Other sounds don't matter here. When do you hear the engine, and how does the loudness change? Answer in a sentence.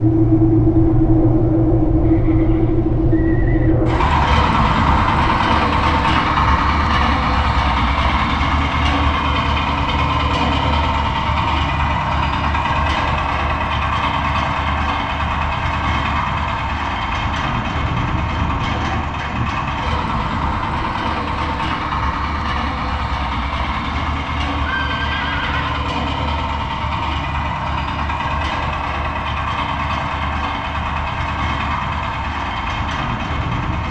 You can hear the engine from 0.0 to 33.8 s, getting quieter.